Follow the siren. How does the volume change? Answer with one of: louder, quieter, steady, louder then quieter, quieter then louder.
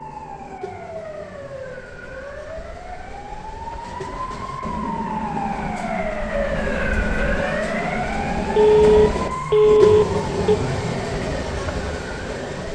louder then quieter.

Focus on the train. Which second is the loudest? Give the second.
10 s.